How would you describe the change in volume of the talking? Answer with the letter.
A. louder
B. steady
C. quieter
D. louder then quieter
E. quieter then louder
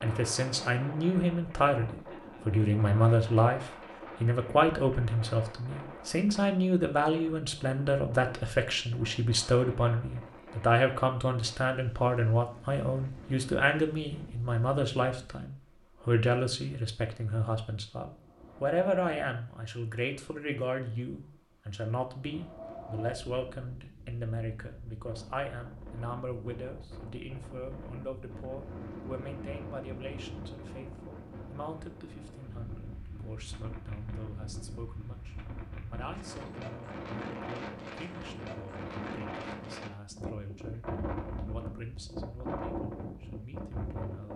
C.